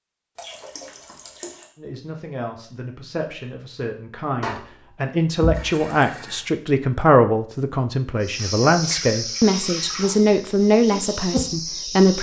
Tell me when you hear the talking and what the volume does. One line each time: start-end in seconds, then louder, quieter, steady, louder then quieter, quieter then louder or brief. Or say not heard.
1.8-12.1 louder.